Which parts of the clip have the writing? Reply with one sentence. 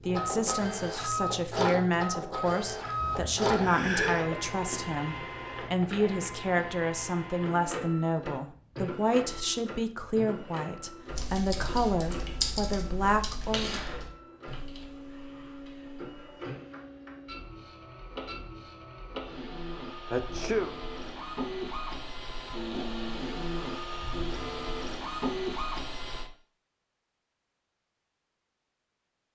The writing can't be heard in this clip.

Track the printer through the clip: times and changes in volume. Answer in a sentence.
You can hear the printer from 0.0 to 26.3 s, getting quieter then louder.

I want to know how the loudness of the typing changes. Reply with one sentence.
The volume of the typing goes up, then down.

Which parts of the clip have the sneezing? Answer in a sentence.
You can hear the sneezing from 3.0 to 4.5 s and from 20.1 to 20.8 s.